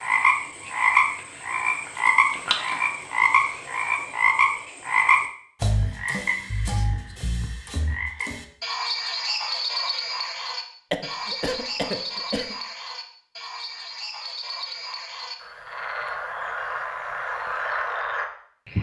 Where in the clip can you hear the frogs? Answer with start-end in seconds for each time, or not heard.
0.0-18.7.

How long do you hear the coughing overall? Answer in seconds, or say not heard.
2 s.